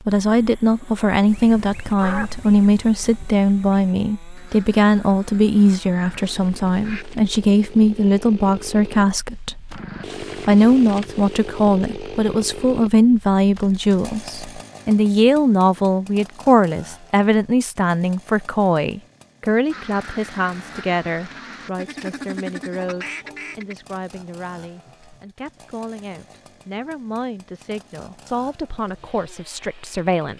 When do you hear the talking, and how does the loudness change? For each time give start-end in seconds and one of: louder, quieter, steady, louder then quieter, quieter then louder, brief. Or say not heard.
0.1-9.8 steady
10.4-30.3 quieter.